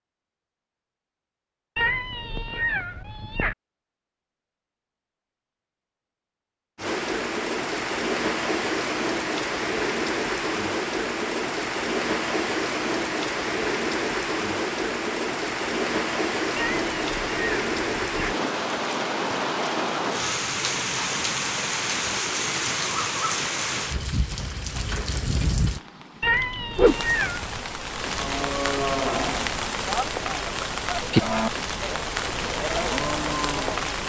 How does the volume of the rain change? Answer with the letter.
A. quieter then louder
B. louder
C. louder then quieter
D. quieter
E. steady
E.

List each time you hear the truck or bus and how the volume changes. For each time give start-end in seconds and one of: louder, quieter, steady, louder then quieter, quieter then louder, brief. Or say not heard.
not heard.